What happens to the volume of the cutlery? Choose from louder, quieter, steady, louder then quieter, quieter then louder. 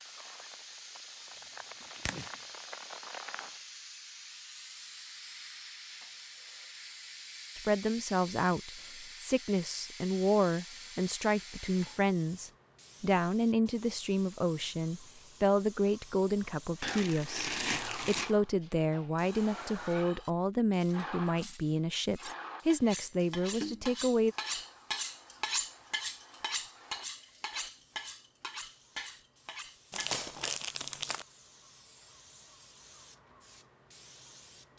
louder then quieter.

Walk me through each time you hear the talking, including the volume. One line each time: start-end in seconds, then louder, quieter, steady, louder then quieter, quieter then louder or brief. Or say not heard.
7.5-24.4 steady.